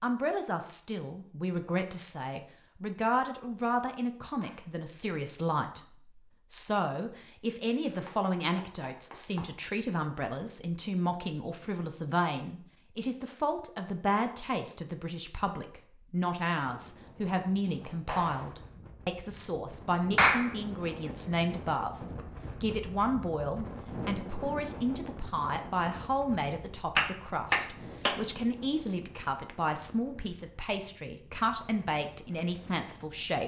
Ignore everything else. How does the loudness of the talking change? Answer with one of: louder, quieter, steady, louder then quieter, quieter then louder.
steady.